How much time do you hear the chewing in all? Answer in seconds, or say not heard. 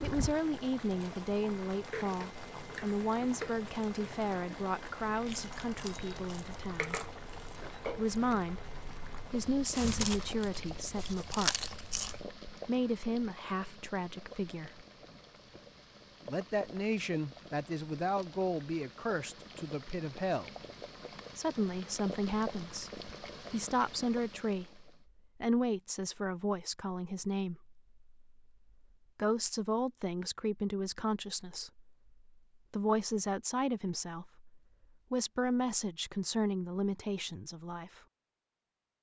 7 s.